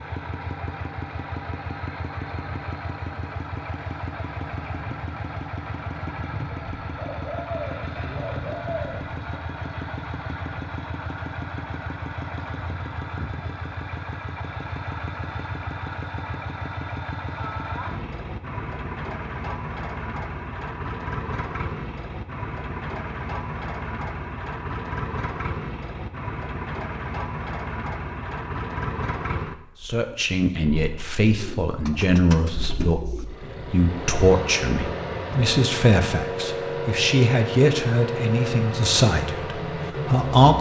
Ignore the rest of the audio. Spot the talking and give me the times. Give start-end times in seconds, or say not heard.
29.9-40.5.